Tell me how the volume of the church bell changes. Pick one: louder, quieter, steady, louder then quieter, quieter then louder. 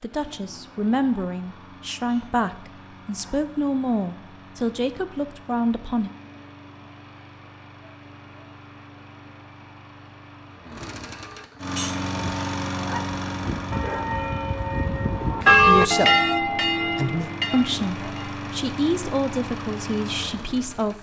louder then quieter.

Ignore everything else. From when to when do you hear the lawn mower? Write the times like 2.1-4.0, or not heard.
0.0-20.9.